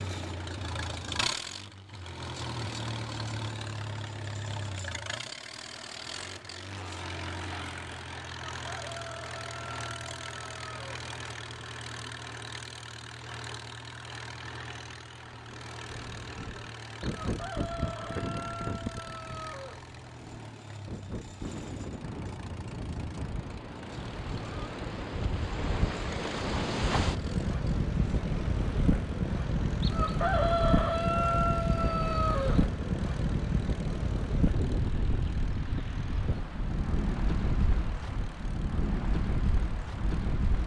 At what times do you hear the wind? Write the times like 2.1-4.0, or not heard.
15.8-40.6.